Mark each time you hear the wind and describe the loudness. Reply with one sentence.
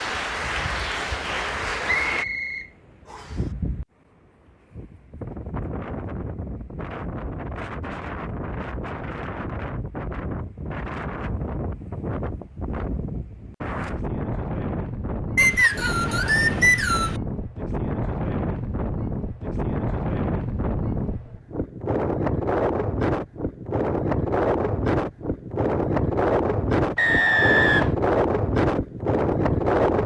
The wind can be heard from 0.0 to 30.0 s, getting louder.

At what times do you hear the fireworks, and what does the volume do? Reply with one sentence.
You can't hear the fireworks here.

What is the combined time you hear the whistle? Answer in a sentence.
You can hear the whistle for 4 seconds altogether.